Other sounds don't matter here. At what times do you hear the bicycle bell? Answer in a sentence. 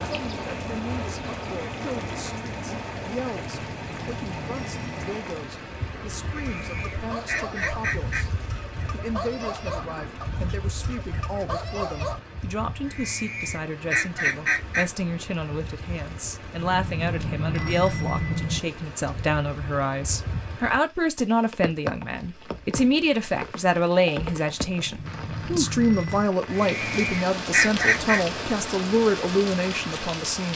You can hear the bicycle bell from 3.7 to 5.2 s, from 16.6 to 18.6 s and from 24.9 to 26.3 s.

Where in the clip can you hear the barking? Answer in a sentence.
You can hear the barking from 6.2 to 12.2 s.